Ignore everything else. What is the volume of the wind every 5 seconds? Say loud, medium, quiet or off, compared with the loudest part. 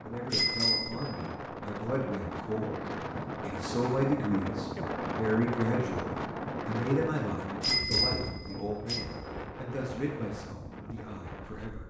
loud, loud, medium.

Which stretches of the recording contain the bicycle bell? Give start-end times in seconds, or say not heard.
0.3-1.0, 7.6-9.1.